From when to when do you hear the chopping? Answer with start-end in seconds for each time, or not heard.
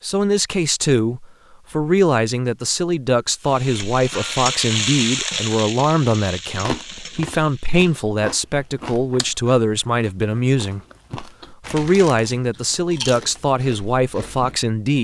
not heard.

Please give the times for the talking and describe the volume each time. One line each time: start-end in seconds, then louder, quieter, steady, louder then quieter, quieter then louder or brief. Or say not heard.
0.0-14.9 steady.